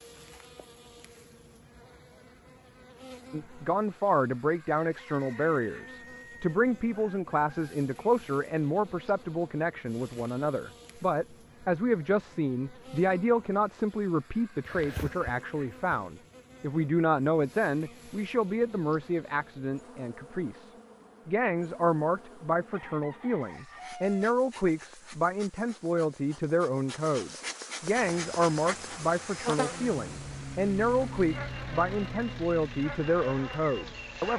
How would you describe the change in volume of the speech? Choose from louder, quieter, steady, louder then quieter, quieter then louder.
steady.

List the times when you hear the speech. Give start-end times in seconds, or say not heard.
3.3-34.3.